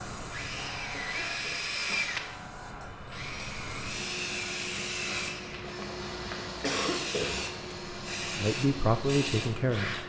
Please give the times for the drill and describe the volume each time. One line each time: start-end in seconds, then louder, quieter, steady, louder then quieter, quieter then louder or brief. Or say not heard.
0.1-10.0 quieter.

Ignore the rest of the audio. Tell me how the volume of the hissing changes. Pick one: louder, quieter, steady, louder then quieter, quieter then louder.
louder.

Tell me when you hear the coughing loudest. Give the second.
7 s.